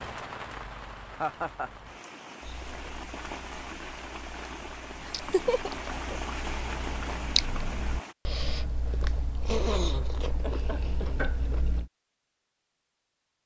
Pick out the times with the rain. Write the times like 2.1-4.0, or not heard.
0.0-8.2.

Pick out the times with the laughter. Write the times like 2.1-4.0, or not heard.
1.1-1.7, 5.0-6.2, 9.4-11.1.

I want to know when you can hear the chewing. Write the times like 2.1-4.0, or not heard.
2.4-11.9.